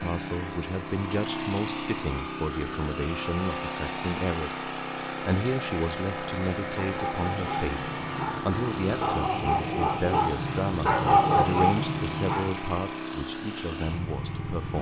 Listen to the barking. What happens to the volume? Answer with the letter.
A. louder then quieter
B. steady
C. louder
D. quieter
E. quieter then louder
C.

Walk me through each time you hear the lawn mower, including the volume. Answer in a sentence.
The lawn mower can be heard from 0.0 to 14.7 s, at a steady volume.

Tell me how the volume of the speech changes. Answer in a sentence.
The loudness of the speech stays about the same.